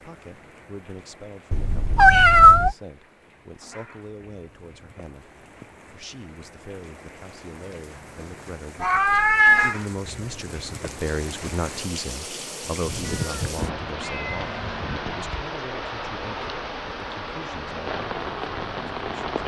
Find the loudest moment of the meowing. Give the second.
2 s.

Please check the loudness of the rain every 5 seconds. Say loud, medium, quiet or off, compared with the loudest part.
quiet, medium, loud, loud.